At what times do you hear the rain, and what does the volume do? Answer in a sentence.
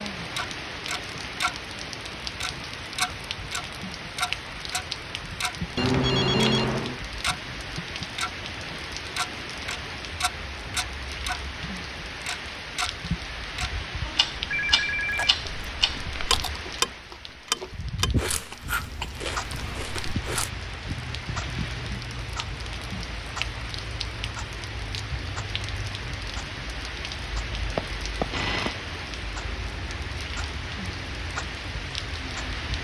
You can hear the rain from 0.0 to 32.7 s, at a steady volume.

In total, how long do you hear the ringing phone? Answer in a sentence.
The ringing phone can be heard for 4 seconds in total.